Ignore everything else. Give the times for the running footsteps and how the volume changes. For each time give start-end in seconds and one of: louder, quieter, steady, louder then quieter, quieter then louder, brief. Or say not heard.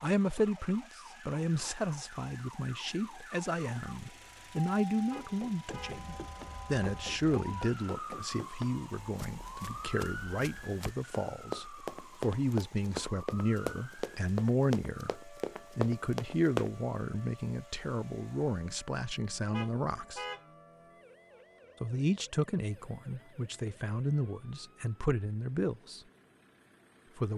5.1-16.7 louder.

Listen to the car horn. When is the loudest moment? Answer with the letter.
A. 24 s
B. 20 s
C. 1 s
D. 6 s
B.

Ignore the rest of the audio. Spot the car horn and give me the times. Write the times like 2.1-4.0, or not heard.
5.1-6.0, 19.5-20.4.